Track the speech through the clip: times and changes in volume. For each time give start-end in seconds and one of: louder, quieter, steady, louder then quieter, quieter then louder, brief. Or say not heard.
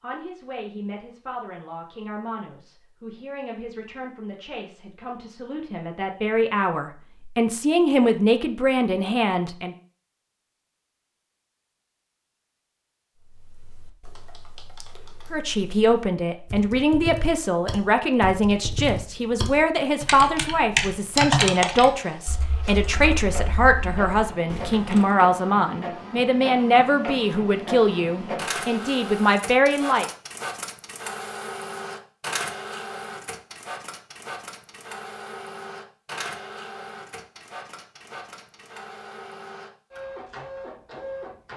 0.0-9.8 louder
15.3-30.1 steady.